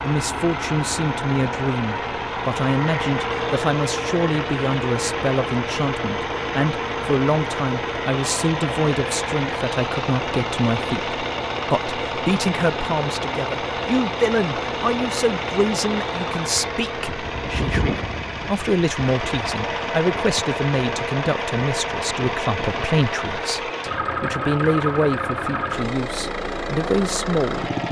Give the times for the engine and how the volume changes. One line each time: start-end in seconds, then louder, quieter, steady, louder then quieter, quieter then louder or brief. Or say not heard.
0.0-27.8 steady.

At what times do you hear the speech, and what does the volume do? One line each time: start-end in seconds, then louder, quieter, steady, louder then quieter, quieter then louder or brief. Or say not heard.
0.0-27.7 steady.